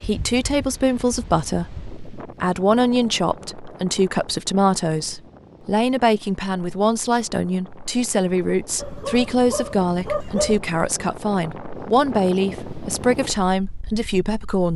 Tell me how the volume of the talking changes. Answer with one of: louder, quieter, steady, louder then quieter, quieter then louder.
steady.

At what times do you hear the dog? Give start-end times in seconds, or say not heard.
8.8-10.6.